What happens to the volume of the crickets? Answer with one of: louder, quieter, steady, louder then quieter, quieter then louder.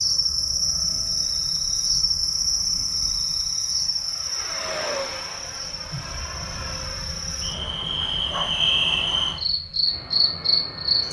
quieter then louder.